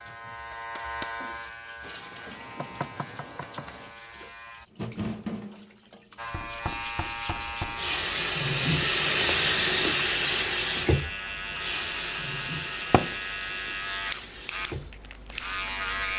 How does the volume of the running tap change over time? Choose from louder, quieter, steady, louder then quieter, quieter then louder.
louder then quieter.